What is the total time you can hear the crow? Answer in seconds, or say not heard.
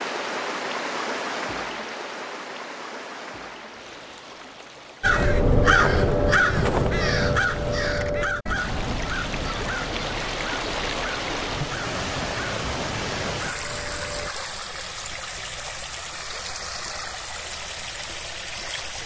9 s.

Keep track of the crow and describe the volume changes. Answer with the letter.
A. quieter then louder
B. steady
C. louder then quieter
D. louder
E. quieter
E.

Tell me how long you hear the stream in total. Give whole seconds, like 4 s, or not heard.
19 s.